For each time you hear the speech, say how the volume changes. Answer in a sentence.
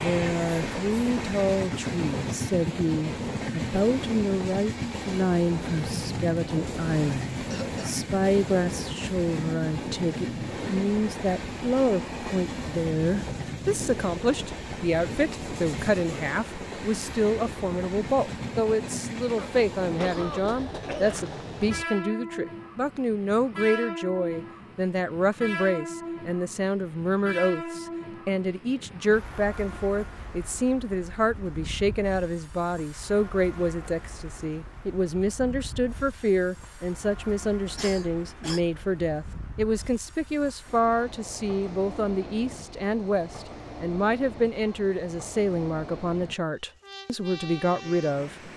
The speech can be heard from 0.0 to 48.5 s, at a steady volume.